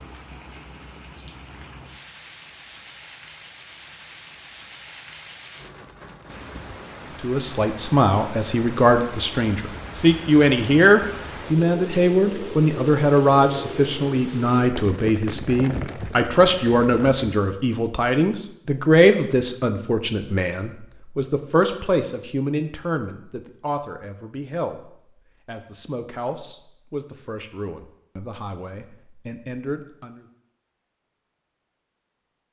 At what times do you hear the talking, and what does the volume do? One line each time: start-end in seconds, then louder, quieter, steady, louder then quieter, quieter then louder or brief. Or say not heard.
7.2-30.2 quieter.